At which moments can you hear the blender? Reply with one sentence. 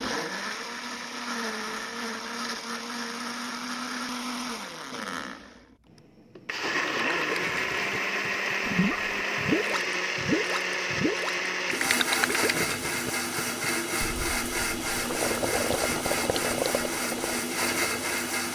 The blender can be heard from 0.0 to 18.4 s.